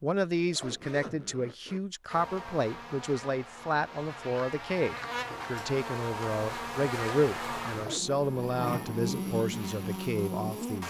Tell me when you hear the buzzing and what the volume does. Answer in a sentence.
You can hear the buzzing from 2.1 to 10.8 s, getting louder.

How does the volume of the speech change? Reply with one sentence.
The loudness of the speech stays about the same.